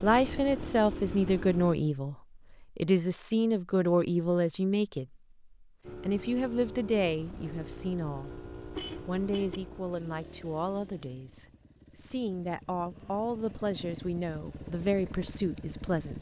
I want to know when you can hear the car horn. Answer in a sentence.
You can hear the car horn from 8.8 to 9.6 s.